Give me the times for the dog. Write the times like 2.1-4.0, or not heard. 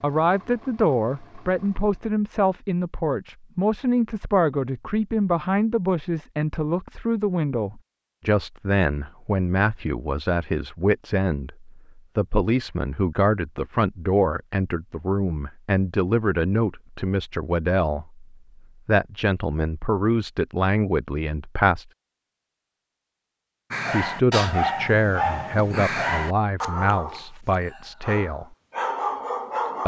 23.7-29.8.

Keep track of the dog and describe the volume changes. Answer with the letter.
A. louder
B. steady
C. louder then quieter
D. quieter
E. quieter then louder
E.